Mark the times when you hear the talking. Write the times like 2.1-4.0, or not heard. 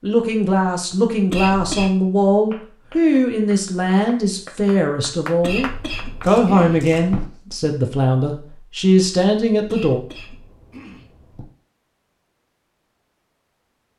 0.0-10.0.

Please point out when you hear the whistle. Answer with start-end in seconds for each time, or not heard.
not heard.